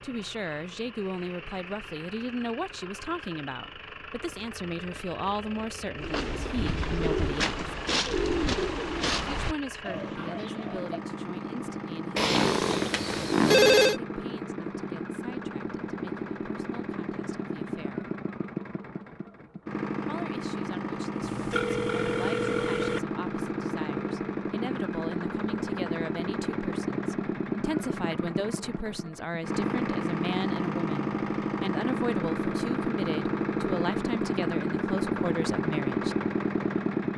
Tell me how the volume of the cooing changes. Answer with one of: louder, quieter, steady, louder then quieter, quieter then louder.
quieter.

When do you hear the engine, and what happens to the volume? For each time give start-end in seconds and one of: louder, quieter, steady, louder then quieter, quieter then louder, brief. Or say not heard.
0.0-37.1 louder.